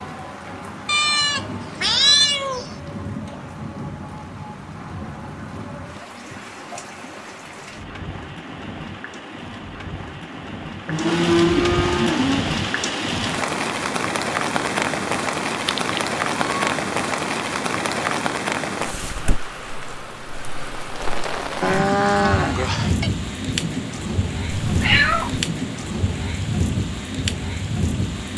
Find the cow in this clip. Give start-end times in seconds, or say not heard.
10.8-12.4, 21.6-23.1.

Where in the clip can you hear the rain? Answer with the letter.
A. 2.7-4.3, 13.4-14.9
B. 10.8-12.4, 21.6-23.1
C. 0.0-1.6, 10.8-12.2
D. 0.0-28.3
D.